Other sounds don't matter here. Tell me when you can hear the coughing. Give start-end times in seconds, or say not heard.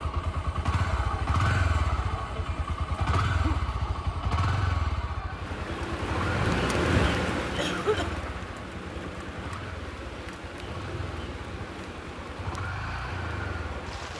3.0-3.6, 7.5-8.2.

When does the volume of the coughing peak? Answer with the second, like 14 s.
8 s.